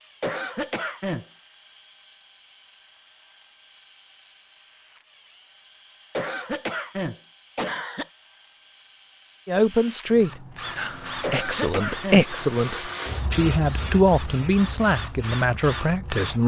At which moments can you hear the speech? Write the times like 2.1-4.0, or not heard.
9.4-16.4.